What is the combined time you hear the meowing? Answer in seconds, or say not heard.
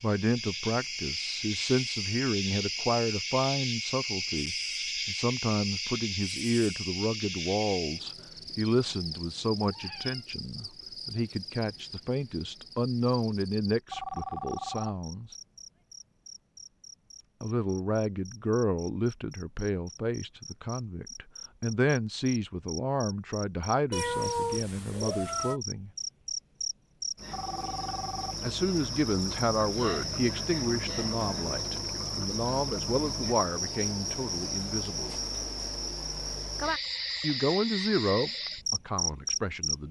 2 s.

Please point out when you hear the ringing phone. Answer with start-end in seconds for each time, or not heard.
13.9-14.9, 27.3-28.4.